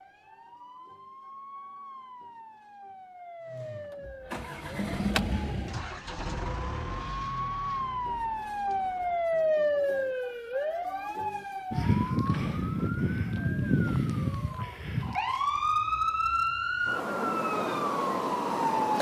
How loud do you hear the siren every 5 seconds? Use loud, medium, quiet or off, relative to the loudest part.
quiet, loud, loud, loud.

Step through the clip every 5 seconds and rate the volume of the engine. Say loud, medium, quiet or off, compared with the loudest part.
loud, loud, off, off.